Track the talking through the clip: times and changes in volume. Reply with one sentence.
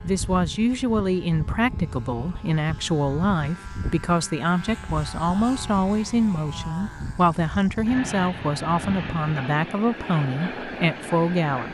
You can hear the talking from 0.0 to 11.7 s, at a steady volume.